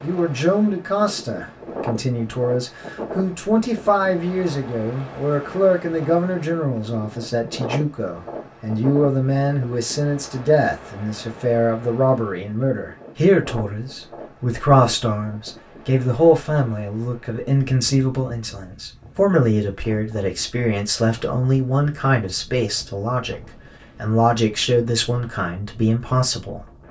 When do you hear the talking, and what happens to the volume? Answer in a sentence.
The talking can be heard from 0.0 to 26.8 s, at a steady volume.